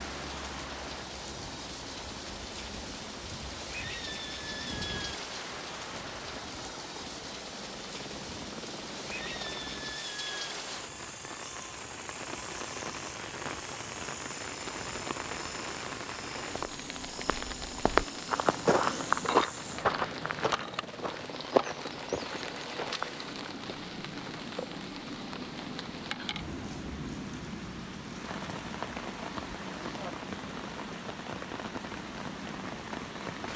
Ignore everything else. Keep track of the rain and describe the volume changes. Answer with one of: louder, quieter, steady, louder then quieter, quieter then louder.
steady.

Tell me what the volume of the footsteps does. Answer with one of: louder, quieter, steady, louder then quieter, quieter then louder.
quieter.